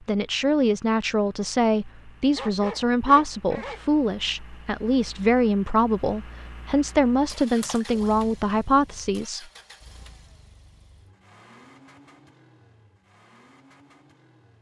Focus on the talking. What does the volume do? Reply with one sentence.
The loudness of the talking stays about the same.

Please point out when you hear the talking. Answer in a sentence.
The talking can be heard from 0.1 to 9.4 s.